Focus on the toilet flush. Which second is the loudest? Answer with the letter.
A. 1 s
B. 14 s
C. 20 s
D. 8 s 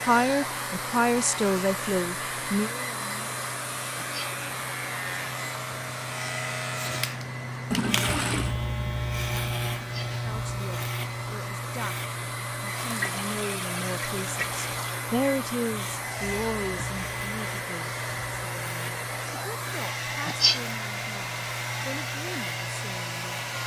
D.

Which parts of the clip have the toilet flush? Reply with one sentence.
You can hear the toilet flush from 7.7 to 8.6 s and from 12.8 to 15.0 s.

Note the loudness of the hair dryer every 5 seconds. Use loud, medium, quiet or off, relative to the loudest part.
loud, medium, loud, loud, loud.